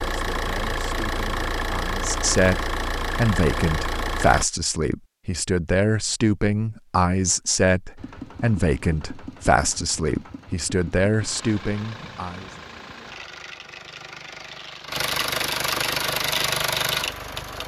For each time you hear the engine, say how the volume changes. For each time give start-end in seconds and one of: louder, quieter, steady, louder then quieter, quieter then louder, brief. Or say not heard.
0.0-4.5 steady
8.0-17.6 louder.